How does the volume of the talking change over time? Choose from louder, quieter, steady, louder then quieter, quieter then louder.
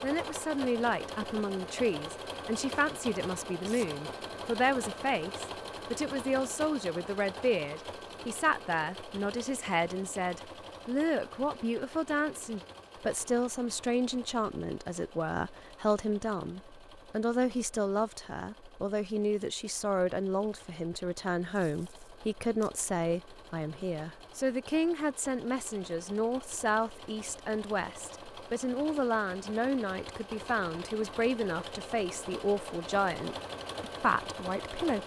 steady.